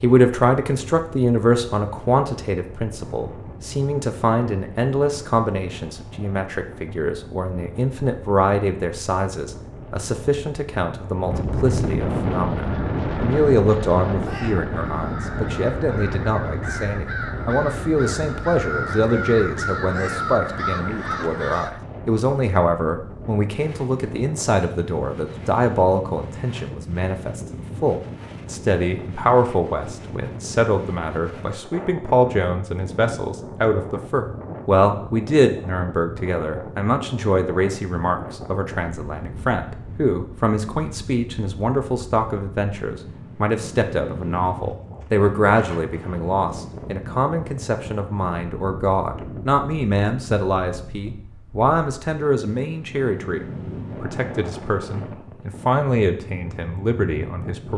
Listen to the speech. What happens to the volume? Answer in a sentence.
The volume of the speech stays about the same.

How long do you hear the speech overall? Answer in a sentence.
You can hear the speech for 58 seconds altogether.